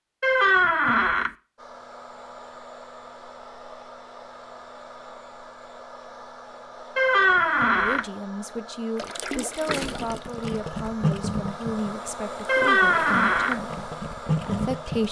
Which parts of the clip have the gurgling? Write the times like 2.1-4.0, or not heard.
8.9-15.0.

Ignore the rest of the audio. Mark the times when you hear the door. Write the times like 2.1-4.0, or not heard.
0.2-1.3, 7.0-8.1, 12.4-13.6.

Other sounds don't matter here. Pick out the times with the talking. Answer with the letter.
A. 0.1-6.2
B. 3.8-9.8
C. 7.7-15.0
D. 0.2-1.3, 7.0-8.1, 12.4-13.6
C.